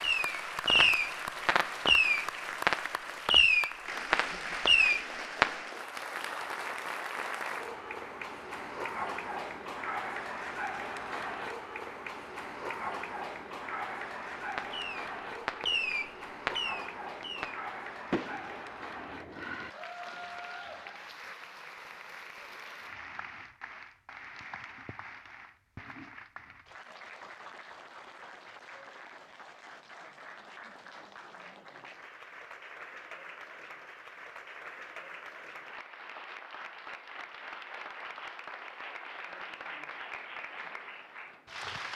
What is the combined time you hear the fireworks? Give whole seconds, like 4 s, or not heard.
11 s.